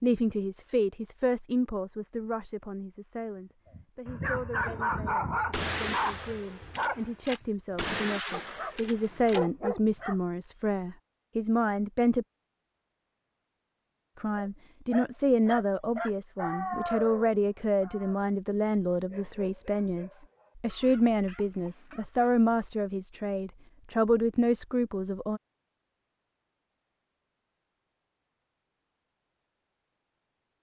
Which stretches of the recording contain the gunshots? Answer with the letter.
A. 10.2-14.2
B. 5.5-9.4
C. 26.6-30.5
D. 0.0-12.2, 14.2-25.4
B.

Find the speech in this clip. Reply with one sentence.
The speech can be heard from 0.0 to 12.2 s and from 14.2 to 25.4 s.